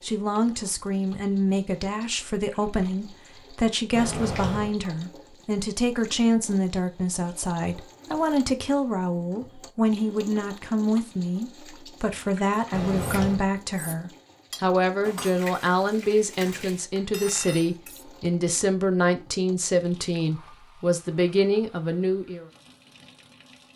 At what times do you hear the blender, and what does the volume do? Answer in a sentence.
You can't hear the blender here.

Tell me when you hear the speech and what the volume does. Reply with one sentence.
You can hear the speech from 0.0 to 22.4 s, at a steady volume.